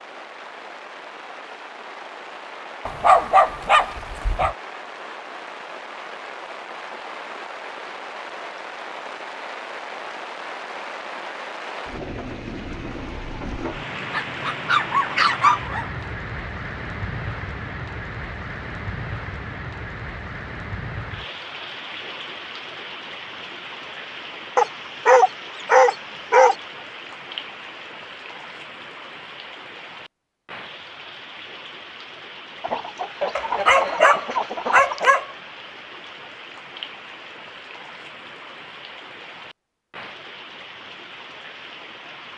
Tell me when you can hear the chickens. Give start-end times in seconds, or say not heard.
32.6-35.1.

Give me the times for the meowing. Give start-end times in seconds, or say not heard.
not heard.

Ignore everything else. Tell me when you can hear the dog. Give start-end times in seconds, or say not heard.
2.9-4.5, 14.1-15.9, 24.6-26.6, 33.4-35.2.